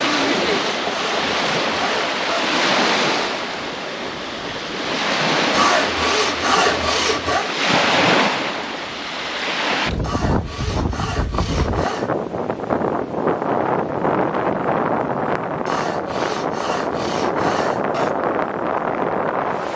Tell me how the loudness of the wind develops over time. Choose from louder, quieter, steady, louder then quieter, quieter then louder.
steady.